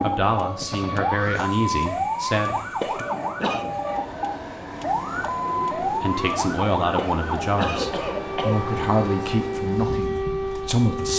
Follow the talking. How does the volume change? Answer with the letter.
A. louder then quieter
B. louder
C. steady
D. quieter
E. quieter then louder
C.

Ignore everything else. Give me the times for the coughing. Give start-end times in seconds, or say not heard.
2.8-3.7, 7.0-8.6.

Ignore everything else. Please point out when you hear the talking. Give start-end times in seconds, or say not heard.
0.0-3.0, 5.9-11.1.